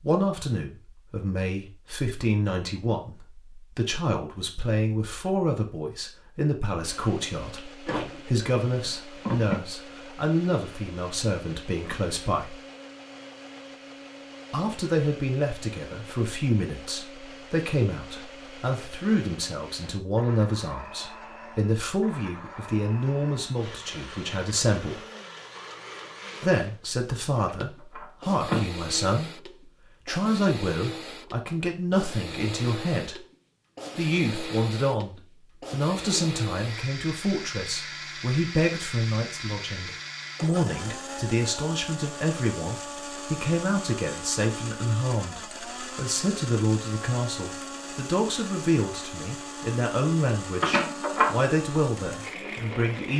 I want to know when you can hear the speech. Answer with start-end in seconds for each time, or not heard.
0.0-12.6, 14.5-25.1, 26.4-33.2, 34.0-53.1.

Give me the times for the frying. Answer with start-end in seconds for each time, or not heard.
not heard.